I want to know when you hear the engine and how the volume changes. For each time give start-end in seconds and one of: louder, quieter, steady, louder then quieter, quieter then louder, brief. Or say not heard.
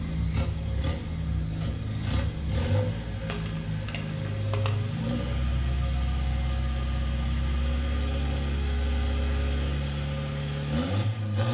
0.0-11.5 steady.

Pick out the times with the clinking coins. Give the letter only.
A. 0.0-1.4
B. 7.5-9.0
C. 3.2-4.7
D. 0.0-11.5
C.